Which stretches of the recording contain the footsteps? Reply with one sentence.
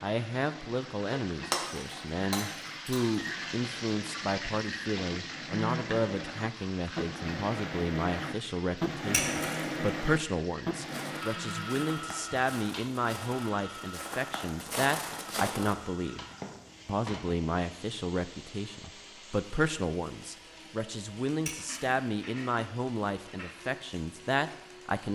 You can hear the footsteps from 10.8 to 16.9 s.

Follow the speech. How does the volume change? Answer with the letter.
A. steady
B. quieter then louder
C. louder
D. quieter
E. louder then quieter
A.